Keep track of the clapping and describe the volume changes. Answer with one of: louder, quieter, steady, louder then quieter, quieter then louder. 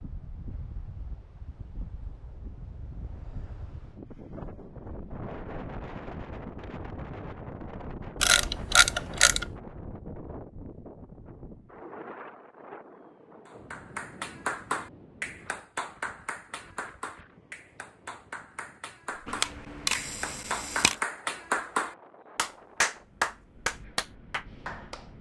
quieter then louder.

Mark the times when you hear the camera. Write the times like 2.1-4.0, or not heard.
8.2-9.4, 19.2-20.9.